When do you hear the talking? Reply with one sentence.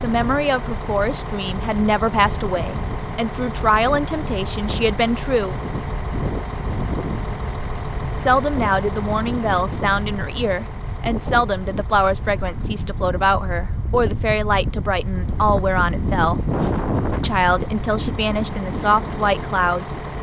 You can hear the talking from 0.0 to 5.5 s, from 8.2 to 16.4 s and from 17.2 to 20.0 s.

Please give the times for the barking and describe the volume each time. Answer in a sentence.
The barking can't be heard in this clip.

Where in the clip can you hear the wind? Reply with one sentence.
You can hear the wind from 0.0 to 20.1 s.